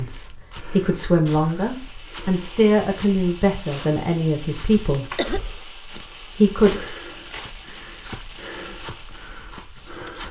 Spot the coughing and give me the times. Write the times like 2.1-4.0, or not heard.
4.7-5.4.